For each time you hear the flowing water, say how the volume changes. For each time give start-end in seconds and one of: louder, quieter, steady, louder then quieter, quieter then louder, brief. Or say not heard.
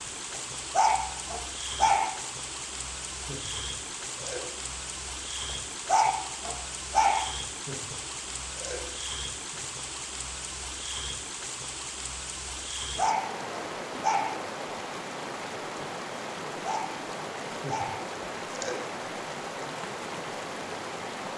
0.0-21.3 steady.